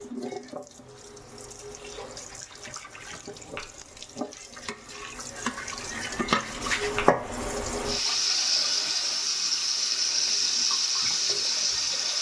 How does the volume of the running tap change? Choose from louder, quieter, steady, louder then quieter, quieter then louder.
louder.